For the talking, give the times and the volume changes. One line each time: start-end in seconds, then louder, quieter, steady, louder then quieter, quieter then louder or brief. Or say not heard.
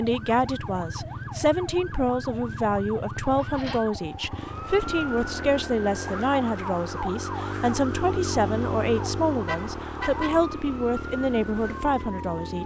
0.0-12.6 steady.